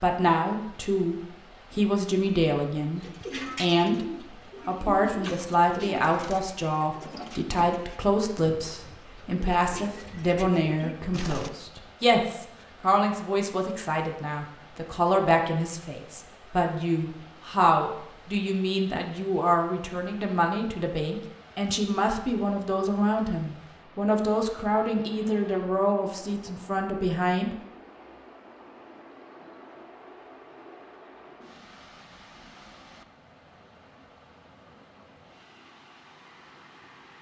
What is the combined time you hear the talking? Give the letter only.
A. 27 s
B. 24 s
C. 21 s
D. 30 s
A.